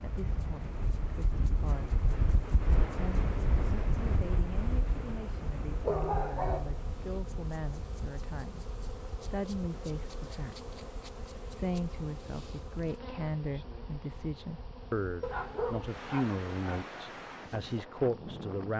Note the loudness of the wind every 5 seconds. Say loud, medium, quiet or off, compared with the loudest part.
loud, medium, quiet, medium.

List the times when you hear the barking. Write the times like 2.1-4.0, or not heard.
5.8-7.2, 15.2-16.9.